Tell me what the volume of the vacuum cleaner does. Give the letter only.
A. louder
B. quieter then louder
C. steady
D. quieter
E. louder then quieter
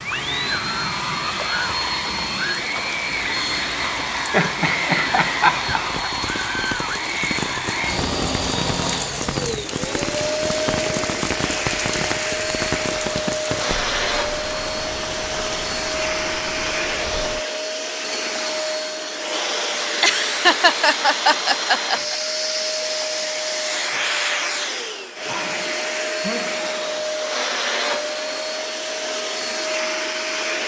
C.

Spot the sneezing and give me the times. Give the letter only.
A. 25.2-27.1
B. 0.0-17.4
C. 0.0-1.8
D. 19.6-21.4
A.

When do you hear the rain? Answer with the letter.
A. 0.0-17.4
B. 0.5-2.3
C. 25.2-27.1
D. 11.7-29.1
A.